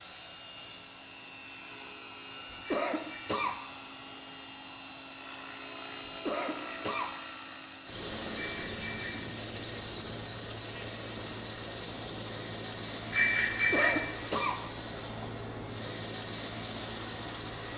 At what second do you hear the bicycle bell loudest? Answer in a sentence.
The volume of the bicycle bell peaks at 14 seconds.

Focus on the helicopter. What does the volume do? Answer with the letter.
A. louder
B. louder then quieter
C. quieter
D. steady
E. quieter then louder
D.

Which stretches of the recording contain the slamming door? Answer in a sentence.
You can't hear the slamming door here.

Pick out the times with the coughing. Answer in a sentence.
The coughing can be heard from 2.5 to 3.6 s, from 6.0 to 7.2 s and from 13.5 to 14.6 s.